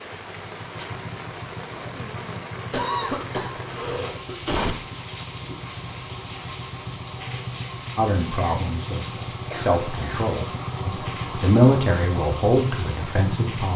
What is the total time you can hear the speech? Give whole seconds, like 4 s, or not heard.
6 s.